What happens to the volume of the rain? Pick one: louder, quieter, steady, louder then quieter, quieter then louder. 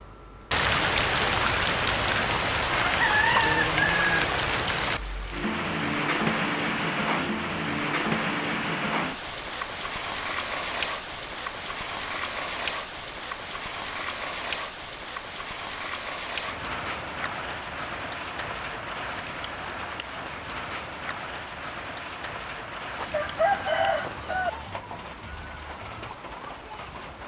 quieter.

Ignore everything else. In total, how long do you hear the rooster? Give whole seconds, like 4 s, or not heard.
3 s.